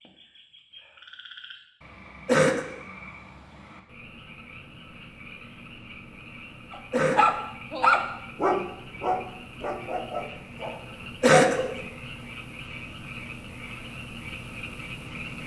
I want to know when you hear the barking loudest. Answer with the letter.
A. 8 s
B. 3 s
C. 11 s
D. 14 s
A.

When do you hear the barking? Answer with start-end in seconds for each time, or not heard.
6.7-11.8.